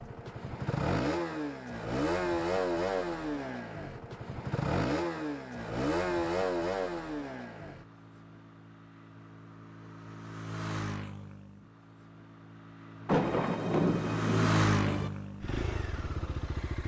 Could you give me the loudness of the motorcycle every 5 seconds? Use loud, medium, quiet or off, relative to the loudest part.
loud, loud, loud, medium.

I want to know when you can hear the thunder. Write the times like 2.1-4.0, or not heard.
13.1-15.1.